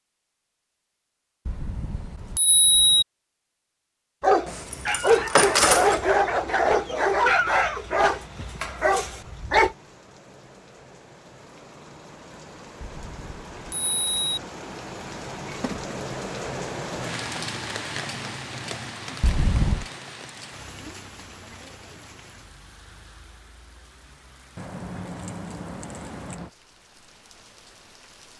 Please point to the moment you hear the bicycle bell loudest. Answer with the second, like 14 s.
3 s.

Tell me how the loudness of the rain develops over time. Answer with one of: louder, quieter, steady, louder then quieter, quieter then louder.
louder then quieter.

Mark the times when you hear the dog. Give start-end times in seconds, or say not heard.
4.2-9.8.